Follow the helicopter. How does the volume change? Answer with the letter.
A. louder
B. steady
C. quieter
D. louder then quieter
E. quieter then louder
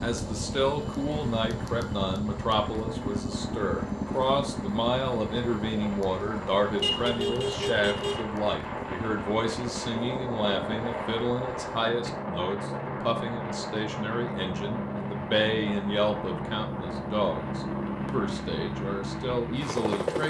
E.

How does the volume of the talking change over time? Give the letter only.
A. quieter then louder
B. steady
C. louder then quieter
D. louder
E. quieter
B.